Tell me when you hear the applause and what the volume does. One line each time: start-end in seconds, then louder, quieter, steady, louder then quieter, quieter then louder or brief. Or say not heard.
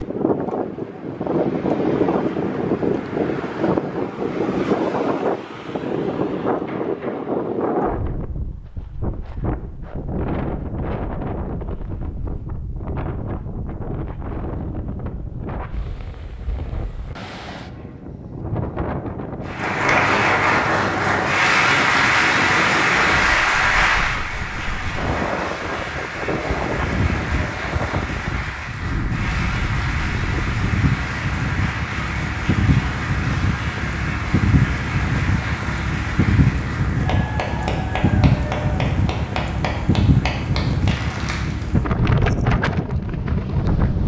19.4-41.8 quieter.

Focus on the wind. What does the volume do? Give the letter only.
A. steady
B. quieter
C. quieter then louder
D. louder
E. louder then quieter
C.